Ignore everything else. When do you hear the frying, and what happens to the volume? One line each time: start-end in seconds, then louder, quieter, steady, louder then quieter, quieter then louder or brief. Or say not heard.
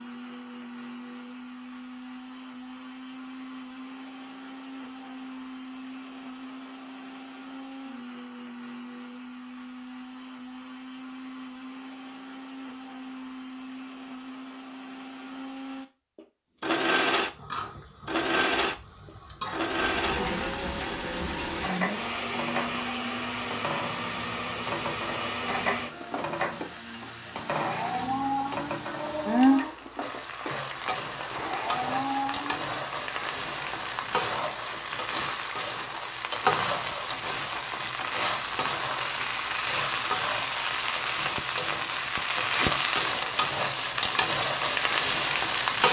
16.9-45.8 louder.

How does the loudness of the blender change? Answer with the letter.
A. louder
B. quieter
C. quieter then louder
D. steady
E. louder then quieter
A.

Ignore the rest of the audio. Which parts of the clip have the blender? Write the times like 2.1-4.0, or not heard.
0.0-32.7.